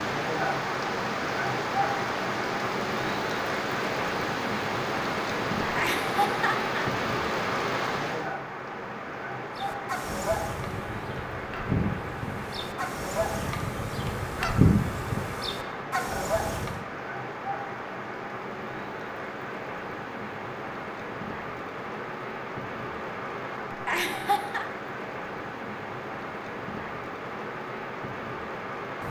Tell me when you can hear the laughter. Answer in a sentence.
The laughter can be heard from 5.6 to 6.9 s and from 23.7 to 24.6 s.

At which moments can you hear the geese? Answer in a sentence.
The geese can be heard from 9.6 to 16.8 s.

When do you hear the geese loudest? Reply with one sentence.
The volume of the geese peaks at 15 seconds.